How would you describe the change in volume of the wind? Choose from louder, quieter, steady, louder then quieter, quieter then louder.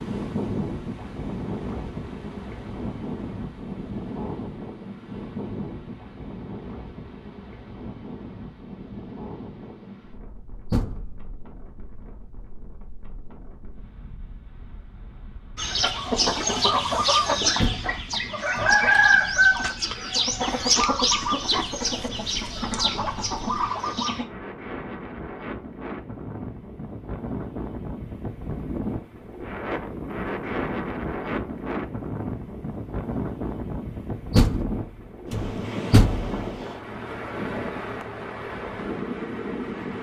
quieter then louder.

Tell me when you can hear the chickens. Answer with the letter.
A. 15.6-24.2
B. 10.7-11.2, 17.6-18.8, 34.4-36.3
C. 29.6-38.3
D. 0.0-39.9
A.